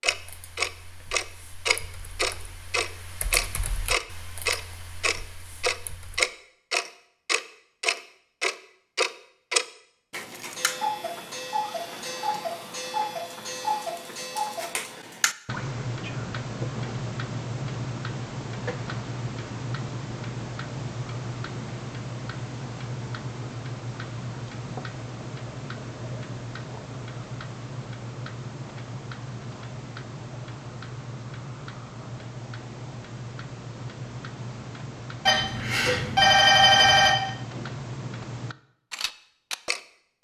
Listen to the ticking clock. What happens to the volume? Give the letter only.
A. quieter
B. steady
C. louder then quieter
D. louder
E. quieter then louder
A.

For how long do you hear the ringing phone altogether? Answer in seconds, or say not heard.
2 s.